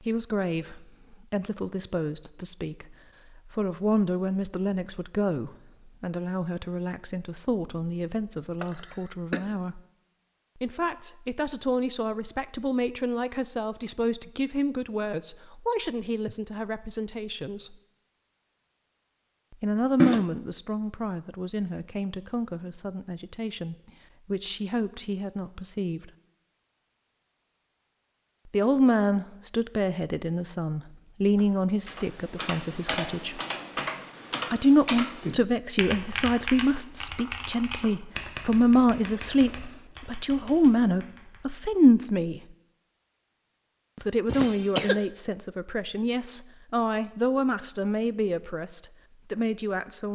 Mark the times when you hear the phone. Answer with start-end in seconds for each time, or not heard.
not heard.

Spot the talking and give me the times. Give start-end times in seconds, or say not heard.
0.0-9.8, 10.6-17.8, 19.5-26.1, 28.5-33.4, 34.5-42.4, 44.0-50.1.